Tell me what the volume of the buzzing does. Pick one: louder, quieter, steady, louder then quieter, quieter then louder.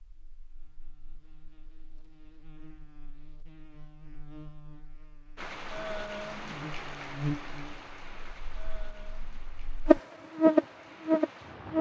louder.